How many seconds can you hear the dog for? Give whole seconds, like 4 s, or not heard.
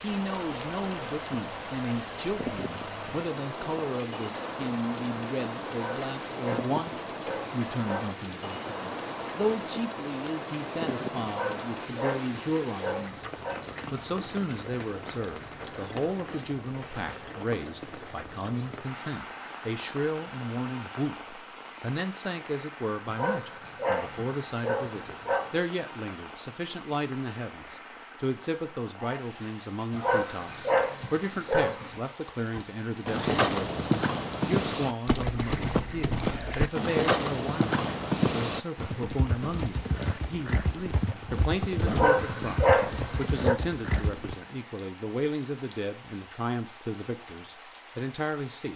11 s.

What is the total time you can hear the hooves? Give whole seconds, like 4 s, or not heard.
24 s.